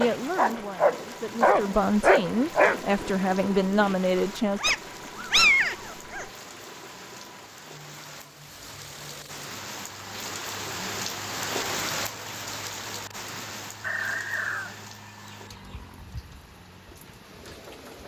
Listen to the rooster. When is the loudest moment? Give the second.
14 s.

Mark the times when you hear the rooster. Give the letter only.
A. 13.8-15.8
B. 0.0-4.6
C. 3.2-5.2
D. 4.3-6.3
A.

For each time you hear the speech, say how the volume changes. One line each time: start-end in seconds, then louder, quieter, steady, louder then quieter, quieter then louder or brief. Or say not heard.
0.0-4.6 louder.